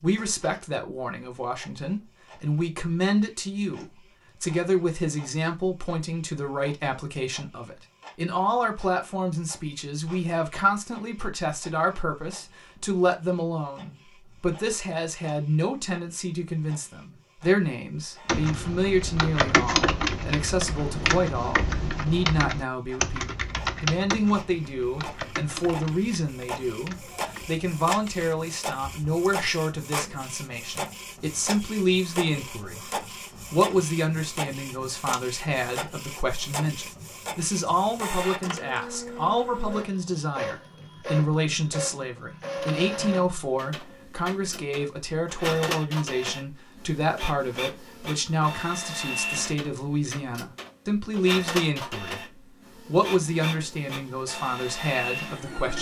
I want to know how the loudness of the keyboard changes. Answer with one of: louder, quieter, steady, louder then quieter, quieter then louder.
quieter.